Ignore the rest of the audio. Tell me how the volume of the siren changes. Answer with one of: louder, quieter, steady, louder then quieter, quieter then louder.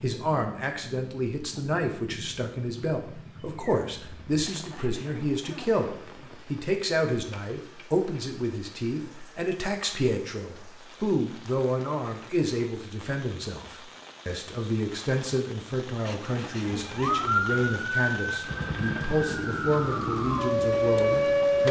quieter then louder.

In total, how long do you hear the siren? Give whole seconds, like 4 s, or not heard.
5 s.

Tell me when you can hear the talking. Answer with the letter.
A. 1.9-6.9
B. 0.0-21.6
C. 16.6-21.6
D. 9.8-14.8
B.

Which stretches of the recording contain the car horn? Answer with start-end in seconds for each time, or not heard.
not heard.